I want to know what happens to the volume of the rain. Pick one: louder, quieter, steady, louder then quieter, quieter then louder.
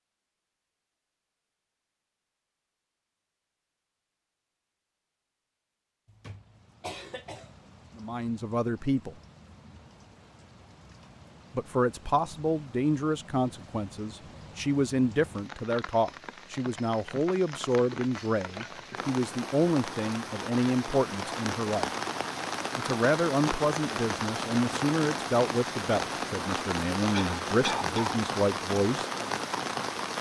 louder.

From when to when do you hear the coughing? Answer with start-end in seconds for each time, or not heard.
6.0-7.5, 27.1-28.2.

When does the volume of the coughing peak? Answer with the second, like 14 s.
28 s.